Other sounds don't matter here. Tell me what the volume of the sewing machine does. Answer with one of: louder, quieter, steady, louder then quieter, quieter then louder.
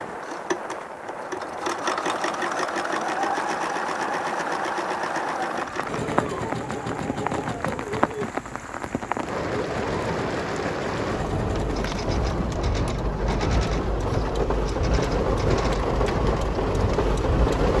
quieter.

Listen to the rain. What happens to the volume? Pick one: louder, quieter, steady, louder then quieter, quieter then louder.
louder.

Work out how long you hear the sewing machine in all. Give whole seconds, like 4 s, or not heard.
16 s.